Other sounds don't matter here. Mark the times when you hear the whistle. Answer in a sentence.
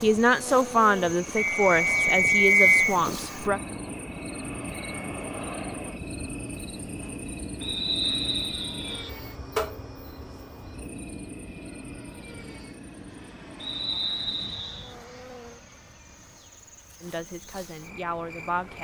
You can hear the whistle from 1.4 to 3.0 s, from 7.6 to 9.1 s and from 13.6 to 14.9 s.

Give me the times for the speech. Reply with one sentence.
The speech can be heard from 0.0 to 3.6 s and from 17.0 to 18.7 s.